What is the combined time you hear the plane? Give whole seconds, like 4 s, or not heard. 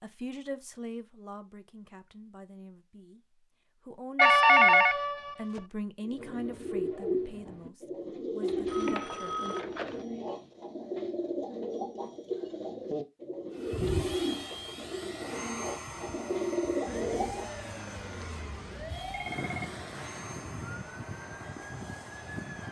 9 s.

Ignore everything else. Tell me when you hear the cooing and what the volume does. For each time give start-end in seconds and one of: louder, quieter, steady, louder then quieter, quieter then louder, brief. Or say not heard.
6.0-17.5 steady.